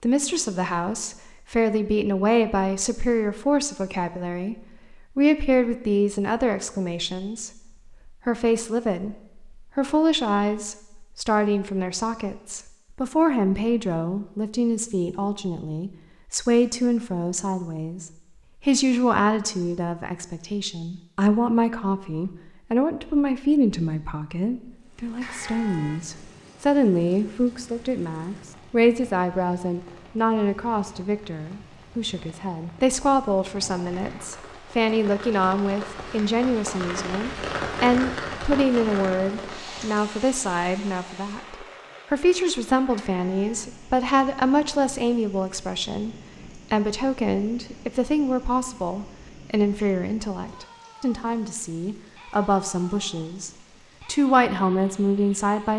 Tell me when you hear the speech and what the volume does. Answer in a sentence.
The speech can be heard from 0.0 to 55.7 s, at a steady volume.